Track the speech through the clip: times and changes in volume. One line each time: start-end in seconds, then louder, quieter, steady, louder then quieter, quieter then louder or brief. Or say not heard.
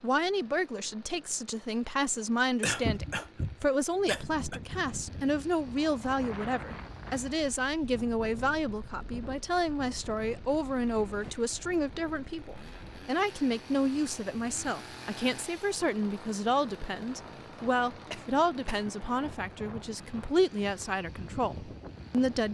0.0-22.4 steady.